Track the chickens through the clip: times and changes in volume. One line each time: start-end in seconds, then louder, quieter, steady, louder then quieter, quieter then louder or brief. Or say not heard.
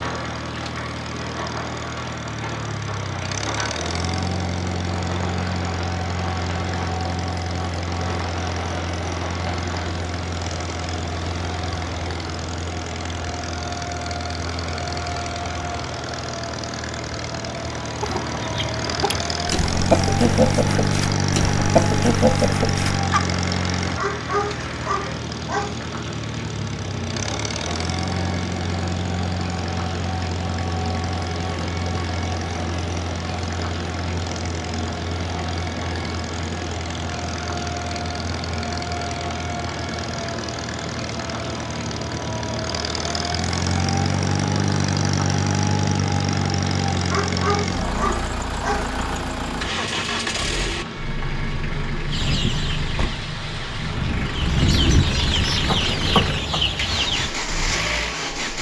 18.0-23.2 louder
52.1-57.3 louder.